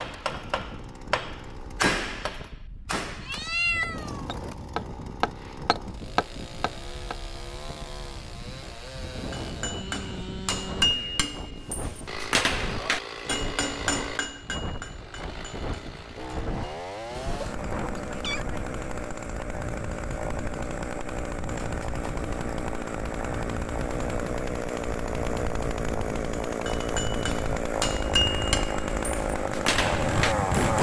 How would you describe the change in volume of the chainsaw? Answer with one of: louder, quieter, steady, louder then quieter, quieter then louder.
louder.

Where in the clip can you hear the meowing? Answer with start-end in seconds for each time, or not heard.
3.2-4.2, 17.4-18.6, 21.6-22.1.